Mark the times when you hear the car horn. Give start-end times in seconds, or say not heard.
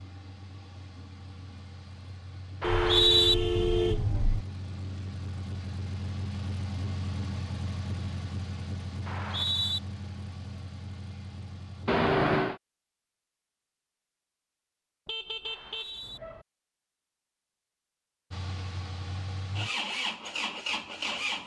2.6-4.5, 11.8-12.6, 15.1-16.4.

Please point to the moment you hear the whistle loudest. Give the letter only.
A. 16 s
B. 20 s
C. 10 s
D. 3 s
D.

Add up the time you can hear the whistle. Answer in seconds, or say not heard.
2 s.